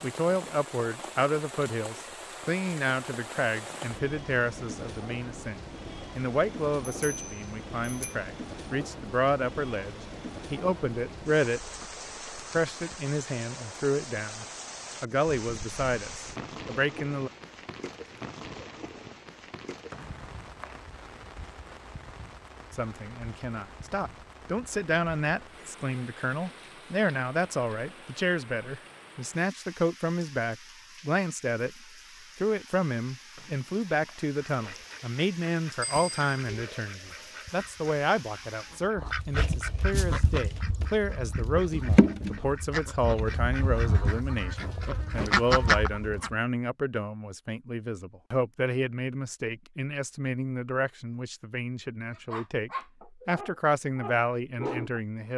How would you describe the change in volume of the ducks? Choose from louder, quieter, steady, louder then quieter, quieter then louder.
louder.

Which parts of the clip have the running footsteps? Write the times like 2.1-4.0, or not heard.
not heard.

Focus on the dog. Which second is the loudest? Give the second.
55 s.